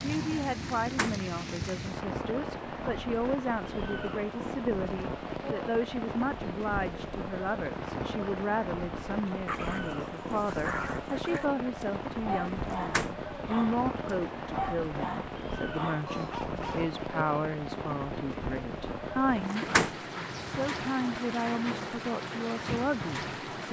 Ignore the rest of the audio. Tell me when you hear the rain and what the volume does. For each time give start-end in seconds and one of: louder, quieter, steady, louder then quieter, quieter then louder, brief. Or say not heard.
0.0-23.6 steady.